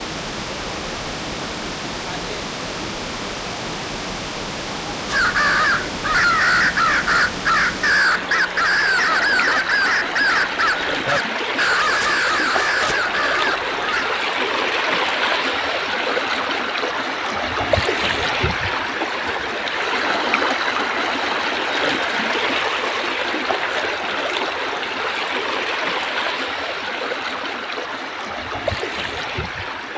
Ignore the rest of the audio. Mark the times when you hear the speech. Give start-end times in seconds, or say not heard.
not heard.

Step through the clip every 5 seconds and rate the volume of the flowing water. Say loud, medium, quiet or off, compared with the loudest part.
medium, medium, loud, loud, loud, loud.